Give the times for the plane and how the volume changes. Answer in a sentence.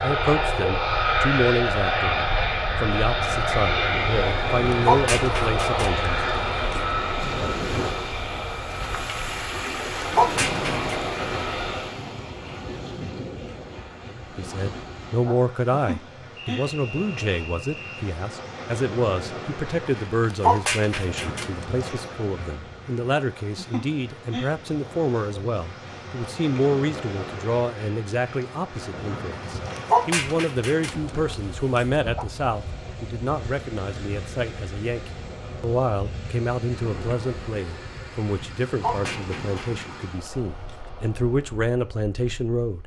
You can hear the plane from 0.0 to 12.0 s, getting quieter.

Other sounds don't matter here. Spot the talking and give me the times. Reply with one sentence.
You can hear the talking from 0.0 to 6.2 s and from 14.1 to 42.8 s.